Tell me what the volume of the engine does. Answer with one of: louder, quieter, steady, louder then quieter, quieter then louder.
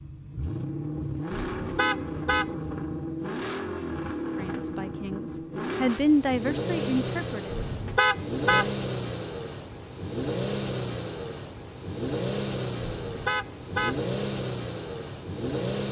steady.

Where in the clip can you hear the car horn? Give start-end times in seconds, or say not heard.
1.3-2.5, 7.5-8.8, 13.0-14.0.